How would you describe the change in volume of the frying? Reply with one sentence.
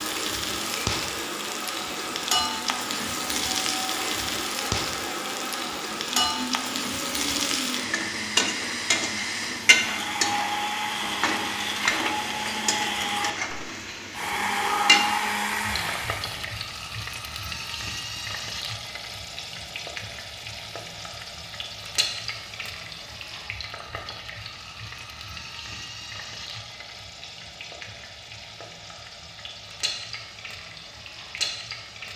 The volume of the frying goes down.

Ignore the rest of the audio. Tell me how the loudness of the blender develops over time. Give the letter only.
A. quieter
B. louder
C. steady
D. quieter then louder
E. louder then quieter
B.